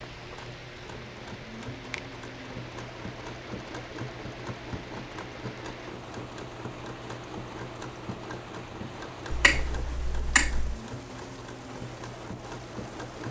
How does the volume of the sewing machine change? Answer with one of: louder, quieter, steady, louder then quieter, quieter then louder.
steady.